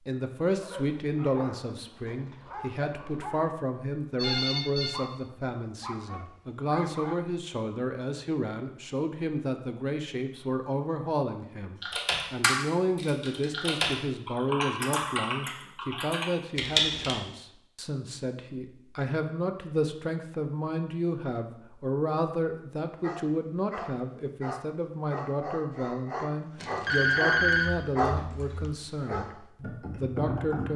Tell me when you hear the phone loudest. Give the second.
27 s.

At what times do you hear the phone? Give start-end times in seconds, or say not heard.
4.2-5.0, 26.6-27.8.